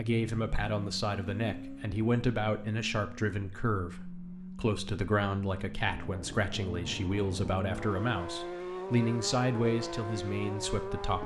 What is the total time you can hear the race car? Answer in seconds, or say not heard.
11 s.